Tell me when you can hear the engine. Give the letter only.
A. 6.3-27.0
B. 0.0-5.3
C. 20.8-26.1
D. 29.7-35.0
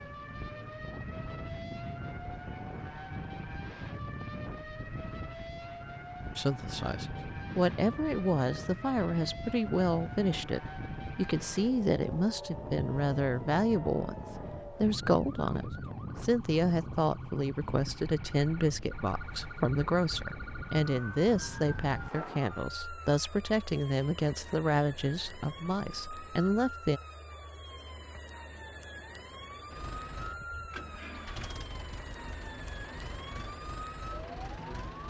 D.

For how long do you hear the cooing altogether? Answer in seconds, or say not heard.
not heard.